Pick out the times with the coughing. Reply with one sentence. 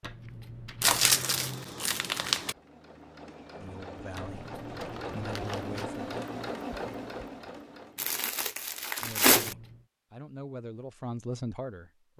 The coughing can't be heard in this clip.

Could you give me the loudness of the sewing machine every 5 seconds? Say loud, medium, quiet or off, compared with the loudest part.
medium, loud, off.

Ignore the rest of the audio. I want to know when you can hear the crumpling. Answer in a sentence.
You can hear the crumpling from 0.8 to 2.5 s and from 8.0 to 9.6 s.